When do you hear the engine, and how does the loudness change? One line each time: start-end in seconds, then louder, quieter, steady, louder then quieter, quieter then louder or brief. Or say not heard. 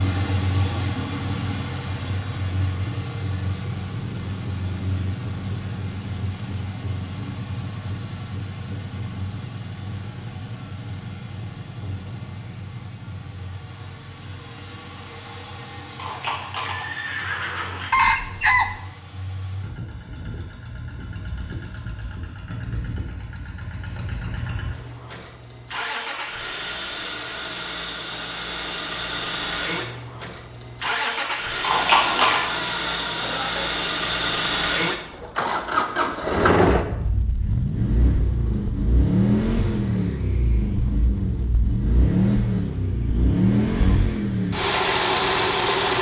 0.0-45.9 quieter then louder.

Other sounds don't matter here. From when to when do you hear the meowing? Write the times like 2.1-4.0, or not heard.
not heard.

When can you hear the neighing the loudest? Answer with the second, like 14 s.
32 s.